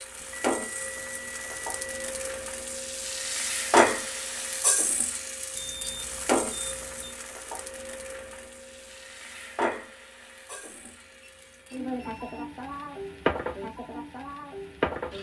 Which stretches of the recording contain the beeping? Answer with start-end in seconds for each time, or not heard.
0.2-2.1, 5.5-7.2, 11.1-12.4.